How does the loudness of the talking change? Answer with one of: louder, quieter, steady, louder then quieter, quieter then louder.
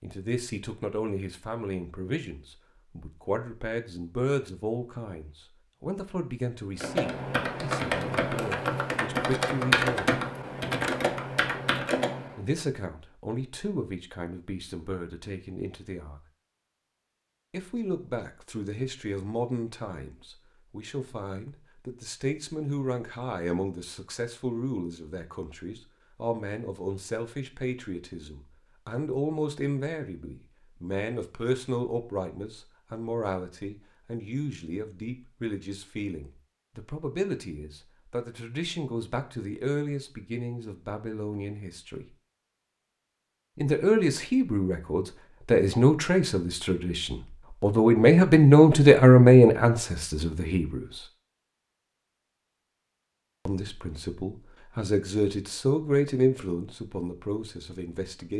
louder.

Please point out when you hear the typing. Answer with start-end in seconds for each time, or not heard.
6.8-12.4.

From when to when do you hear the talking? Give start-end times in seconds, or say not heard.
0.0-10.2, 12.3-16.2, 17.5-42.0, 43.5-51.0, 53.5-58.3.